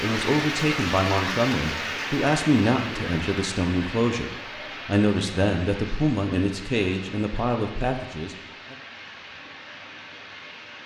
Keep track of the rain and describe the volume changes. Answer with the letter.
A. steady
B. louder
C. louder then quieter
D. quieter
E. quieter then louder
D.